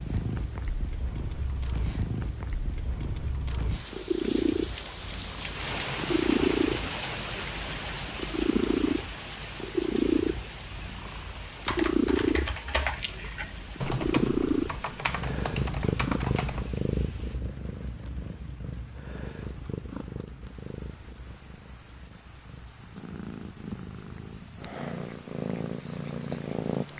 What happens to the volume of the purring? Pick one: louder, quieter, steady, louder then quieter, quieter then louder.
louder then quieter.